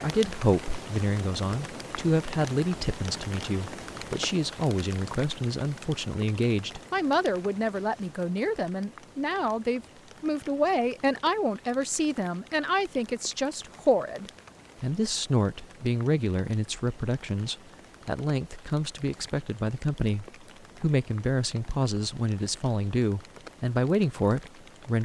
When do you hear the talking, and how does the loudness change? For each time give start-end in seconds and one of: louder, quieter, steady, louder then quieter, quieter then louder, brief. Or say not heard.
0.0-25.0 steady.